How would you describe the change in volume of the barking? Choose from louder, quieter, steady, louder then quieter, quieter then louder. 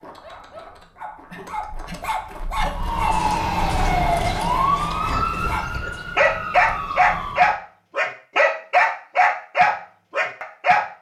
louder.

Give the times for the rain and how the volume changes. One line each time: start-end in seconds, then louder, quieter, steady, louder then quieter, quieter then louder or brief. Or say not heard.
not heard.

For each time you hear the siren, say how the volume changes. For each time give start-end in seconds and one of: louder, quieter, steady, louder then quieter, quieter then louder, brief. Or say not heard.
2.7-7.5 quieter.